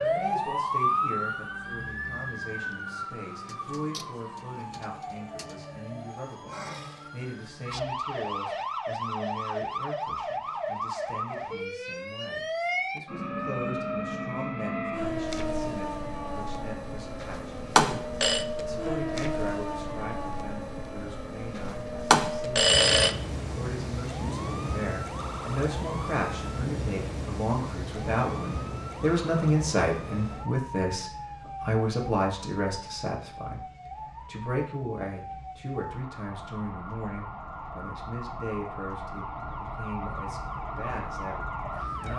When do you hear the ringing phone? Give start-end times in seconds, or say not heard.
17.2-18.4, 21.6-23.1.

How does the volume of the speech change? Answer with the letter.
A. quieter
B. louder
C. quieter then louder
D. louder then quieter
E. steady
D.